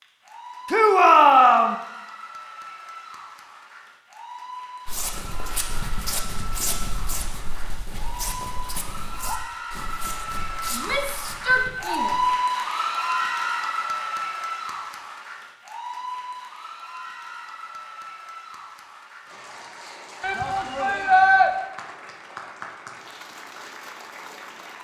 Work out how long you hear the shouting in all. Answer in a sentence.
The shouting can be heard for 4 seconds in total.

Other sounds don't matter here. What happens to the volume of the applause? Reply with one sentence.
The loudness of the applause goes up, then down.